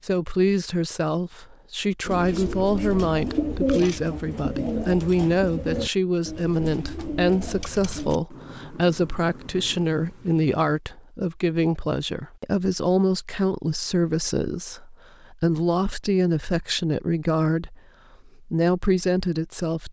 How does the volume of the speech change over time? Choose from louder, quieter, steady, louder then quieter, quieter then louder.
steady.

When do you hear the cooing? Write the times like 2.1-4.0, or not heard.
2.0-8.2.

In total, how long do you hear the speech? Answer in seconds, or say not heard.
20 s.